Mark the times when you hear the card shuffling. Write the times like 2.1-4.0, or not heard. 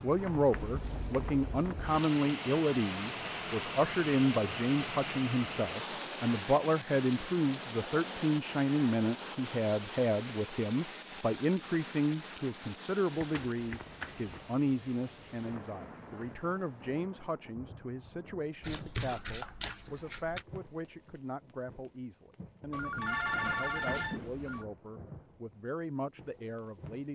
0.1-1.9, 13.2-14.4, 18.6-20.4.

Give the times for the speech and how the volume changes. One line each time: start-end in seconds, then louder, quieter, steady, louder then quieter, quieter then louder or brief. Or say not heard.
0.0-27.1 quieter.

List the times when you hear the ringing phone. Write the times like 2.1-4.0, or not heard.
22.7-24.6.